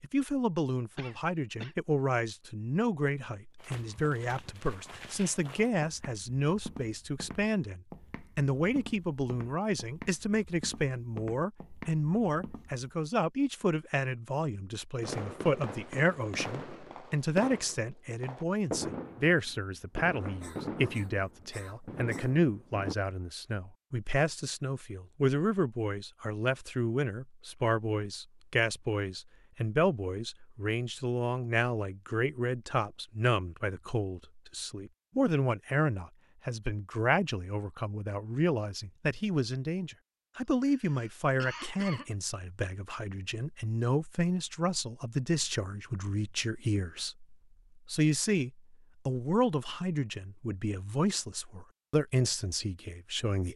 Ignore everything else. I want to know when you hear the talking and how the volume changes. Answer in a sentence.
You can hear the talking from 0.0 to 53.5 s, at a steady volume.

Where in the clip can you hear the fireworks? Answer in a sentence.
The fireworks can be heard from 15.0 to 22.9 s.